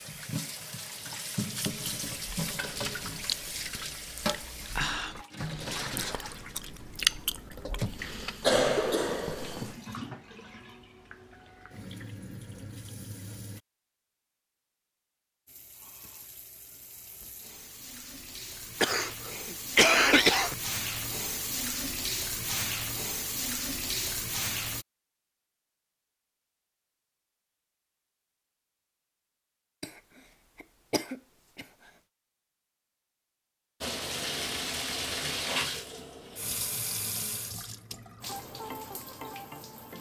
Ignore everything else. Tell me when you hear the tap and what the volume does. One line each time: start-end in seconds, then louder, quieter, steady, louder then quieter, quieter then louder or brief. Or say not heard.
0.0-13.6 quieter
15.4-24.9 louder
33.8-39.9 quieter.